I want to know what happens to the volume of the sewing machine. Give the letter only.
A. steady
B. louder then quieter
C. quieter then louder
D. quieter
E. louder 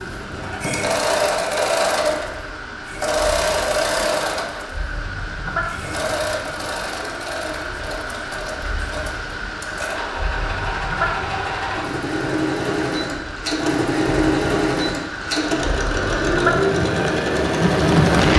C.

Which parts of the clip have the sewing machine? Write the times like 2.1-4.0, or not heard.
0.0-18.3.